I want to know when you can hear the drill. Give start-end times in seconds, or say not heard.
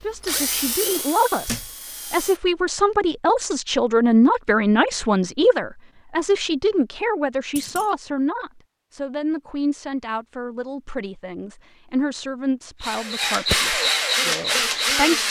0.0-2.4, 12.8-15.2.